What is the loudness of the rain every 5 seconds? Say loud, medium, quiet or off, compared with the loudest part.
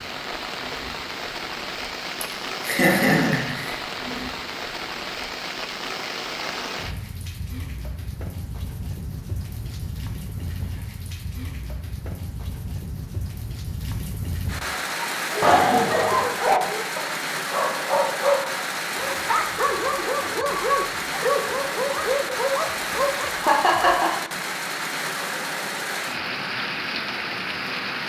loud, medium, medium, loud, loud, loud.